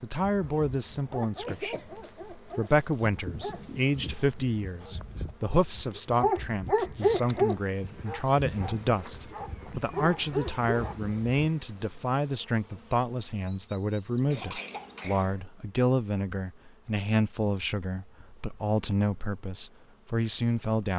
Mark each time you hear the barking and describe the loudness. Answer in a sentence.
You can hear the barking from 0.2 to 11.2 s, getting louder then quieter.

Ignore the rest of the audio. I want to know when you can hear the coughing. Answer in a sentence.
The coughing can be heard from 1.4 to 2.1 s and from 14.3 to 15.5 s.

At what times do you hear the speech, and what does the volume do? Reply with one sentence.
You can hear the speech from 0.0 to 20.9 s, at a steady volume.